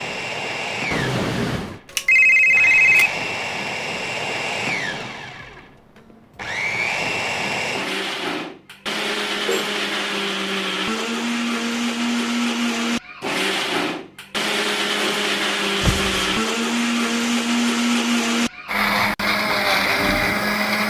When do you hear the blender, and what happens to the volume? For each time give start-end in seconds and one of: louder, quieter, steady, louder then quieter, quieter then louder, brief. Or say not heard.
0.0-20.8 louder.